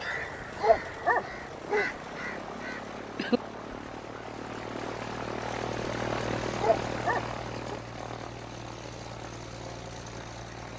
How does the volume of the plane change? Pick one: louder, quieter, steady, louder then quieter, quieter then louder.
louder then quieter.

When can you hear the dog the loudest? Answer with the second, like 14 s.
1 s.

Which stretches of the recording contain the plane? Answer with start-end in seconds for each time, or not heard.
0.0-10.7.